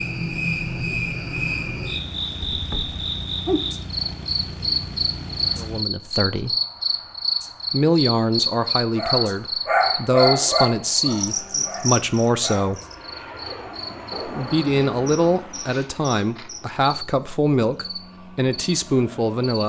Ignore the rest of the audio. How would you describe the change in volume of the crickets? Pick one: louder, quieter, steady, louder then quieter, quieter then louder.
quieter.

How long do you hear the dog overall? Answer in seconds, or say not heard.
6 s.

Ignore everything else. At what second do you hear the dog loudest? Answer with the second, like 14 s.
10 s.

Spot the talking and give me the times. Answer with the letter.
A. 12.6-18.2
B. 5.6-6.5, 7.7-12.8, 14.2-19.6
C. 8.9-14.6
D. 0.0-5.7
B.